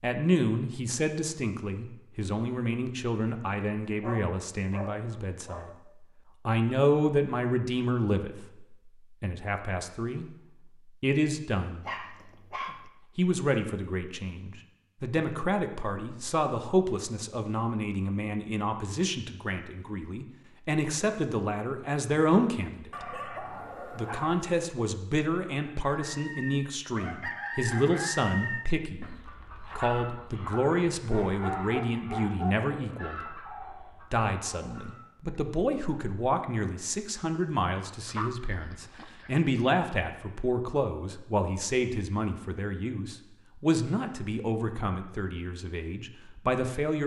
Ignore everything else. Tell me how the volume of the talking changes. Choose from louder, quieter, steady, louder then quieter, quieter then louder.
steady.